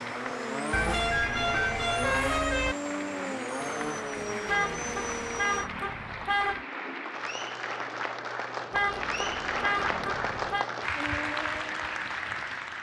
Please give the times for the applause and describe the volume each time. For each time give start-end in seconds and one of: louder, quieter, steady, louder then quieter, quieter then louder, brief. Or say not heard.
0.0-12.7 louder.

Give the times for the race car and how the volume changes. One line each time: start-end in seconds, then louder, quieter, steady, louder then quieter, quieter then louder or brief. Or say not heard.
0.0-5.7 steady
10.9-12.7 brief.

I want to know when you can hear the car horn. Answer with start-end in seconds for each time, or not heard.
0.7-2.8, 4.5-6.7, 8.7-10.7.